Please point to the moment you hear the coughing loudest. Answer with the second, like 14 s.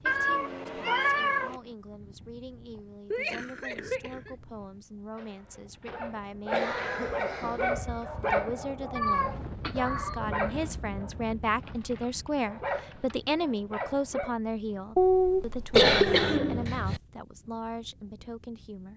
16 s.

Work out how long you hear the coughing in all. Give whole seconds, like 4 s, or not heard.
4 s.